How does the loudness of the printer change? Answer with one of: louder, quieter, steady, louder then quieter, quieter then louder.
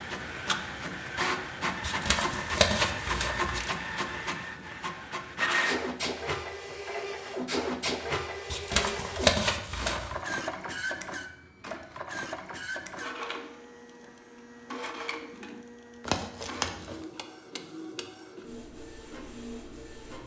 quieter.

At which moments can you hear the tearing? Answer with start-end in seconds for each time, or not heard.
1.8-3.7, 8.5-10.2, 16.1-17.1.